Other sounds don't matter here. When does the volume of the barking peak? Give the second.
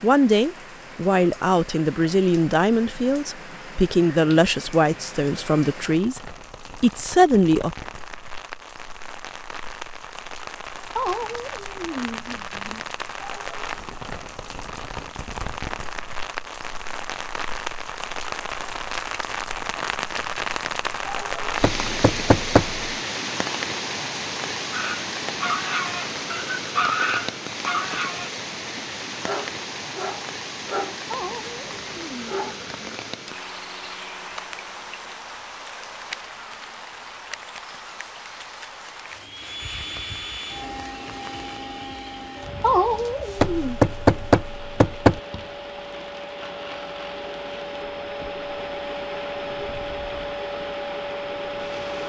27 s.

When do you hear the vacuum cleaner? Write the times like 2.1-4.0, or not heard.
39.2-52.0.